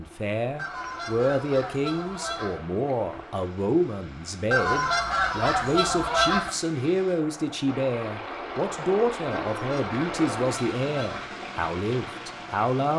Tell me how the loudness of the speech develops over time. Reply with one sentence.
The volume of the speech stays about the same.